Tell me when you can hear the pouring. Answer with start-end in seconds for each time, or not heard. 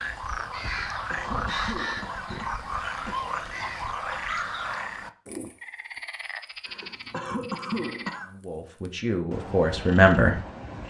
not heard.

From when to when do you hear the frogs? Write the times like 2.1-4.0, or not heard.
0.0-10.8.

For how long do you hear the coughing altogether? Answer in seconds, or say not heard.
4 s.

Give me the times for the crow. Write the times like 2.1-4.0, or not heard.
0.0-5.1.